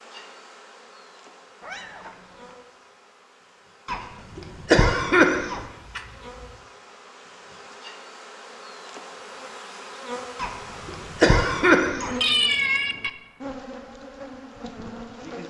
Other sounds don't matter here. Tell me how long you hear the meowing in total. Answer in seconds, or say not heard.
3 s.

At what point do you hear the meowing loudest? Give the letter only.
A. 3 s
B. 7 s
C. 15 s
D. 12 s
D.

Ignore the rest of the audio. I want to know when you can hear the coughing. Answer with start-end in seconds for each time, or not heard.
3.9-5.6, 10.3-12.2.